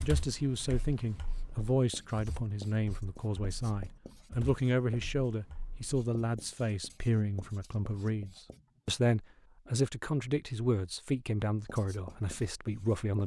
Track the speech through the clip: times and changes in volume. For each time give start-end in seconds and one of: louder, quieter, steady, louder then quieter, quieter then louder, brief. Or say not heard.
0.0-13.2 steady.